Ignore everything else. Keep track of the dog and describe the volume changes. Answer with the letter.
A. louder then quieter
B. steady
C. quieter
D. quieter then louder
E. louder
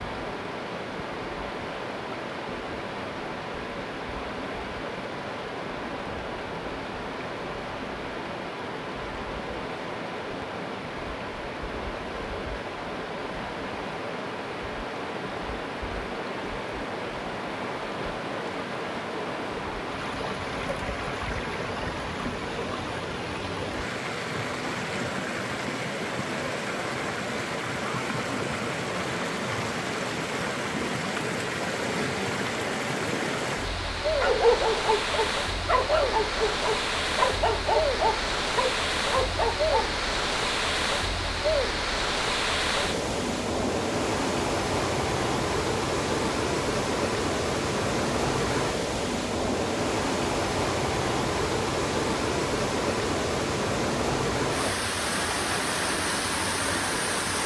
B.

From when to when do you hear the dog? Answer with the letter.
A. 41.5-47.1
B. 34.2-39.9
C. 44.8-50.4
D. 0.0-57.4
B.